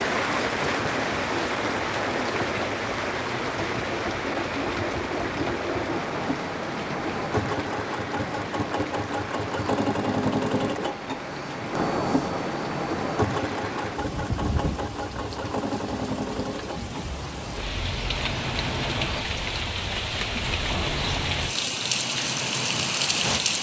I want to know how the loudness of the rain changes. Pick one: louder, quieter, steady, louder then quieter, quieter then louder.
quieter then louder.